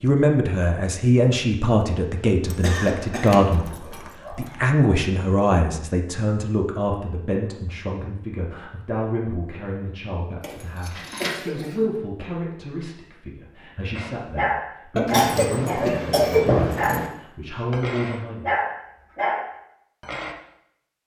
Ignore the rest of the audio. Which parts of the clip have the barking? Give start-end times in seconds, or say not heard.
13.9-20.4.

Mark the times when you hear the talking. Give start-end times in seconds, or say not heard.
0.0-18.6.